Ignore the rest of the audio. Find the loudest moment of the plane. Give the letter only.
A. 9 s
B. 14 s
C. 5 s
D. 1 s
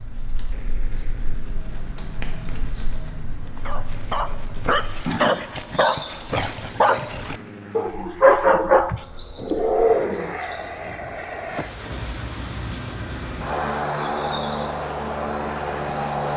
B.